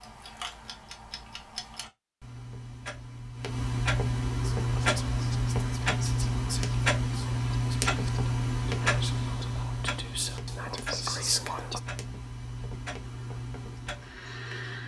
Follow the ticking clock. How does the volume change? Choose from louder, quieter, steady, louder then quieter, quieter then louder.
louder then quieter.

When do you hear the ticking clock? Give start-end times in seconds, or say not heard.
0.0-14.8.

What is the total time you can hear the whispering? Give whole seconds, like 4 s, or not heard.
7 s.